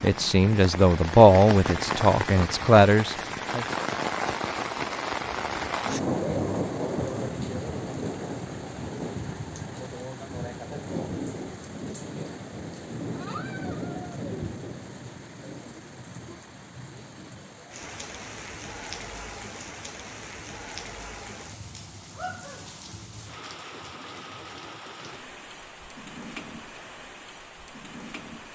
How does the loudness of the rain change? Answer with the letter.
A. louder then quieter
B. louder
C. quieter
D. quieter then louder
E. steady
C.